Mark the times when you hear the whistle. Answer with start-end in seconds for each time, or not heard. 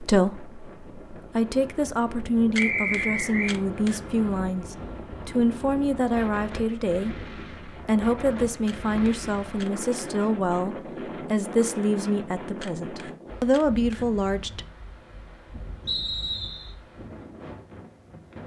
2.5-3.5, 8.2-9.7, 15.8-16.7.